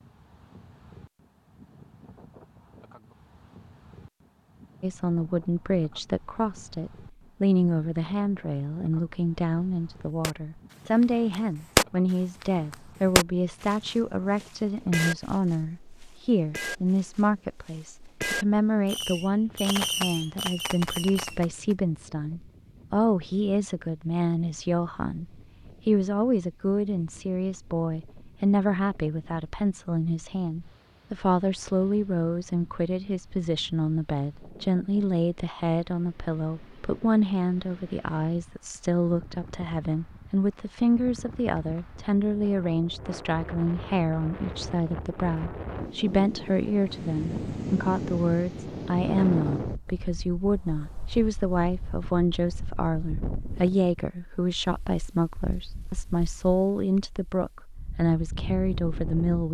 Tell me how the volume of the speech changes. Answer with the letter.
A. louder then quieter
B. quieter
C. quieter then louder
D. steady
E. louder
D.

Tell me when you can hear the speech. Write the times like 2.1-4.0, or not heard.
4.8-59.4.